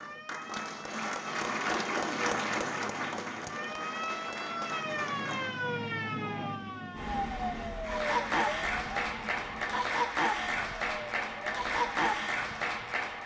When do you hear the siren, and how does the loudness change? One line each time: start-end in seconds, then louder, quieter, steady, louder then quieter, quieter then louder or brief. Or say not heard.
0.0-12.9 louder then quieter.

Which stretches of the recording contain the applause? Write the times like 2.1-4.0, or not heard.
0.0-5.6, 7.8-13.2.